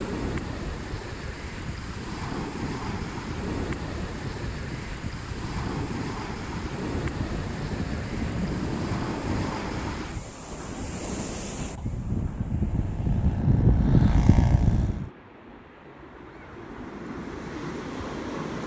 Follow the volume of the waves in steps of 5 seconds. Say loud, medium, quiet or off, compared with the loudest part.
loud, loud, medium, loud.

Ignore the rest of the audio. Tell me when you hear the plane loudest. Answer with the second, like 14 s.
14 s.